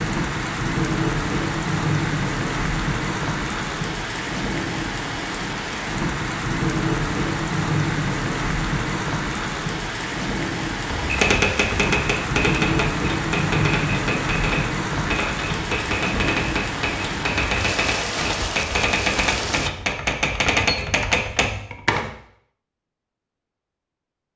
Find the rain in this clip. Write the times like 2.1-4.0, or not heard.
0.0-19.7.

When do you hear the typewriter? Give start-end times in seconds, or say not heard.
10.8-22.1.